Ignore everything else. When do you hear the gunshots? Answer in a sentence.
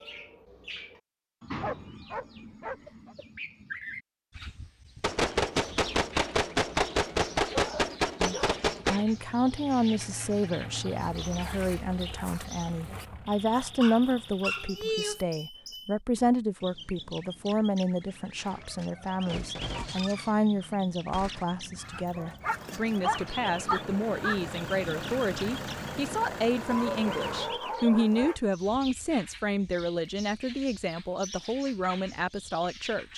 You can hear the gunshots from 5.0 to 9.1 s and from 18.4 to 21.4 s.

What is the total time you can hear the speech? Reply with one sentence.
The speech can be heard for 25 seconds in total.